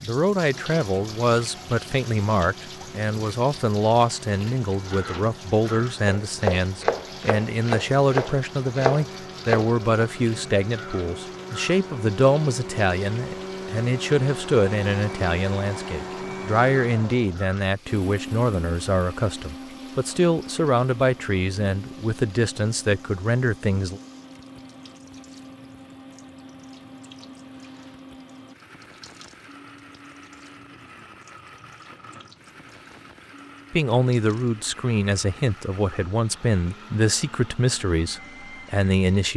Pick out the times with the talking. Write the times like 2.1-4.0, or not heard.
0.0-24.0, 33.7-39.3.